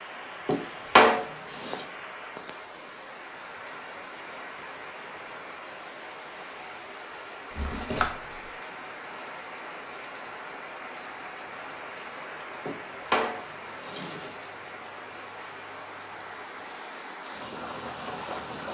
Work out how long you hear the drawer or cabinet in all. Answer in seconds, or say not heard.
4 s.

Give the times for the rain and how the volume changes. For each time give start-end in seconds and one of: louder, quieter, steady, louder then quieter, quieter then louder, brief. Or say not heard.
0.0-18.6 steady.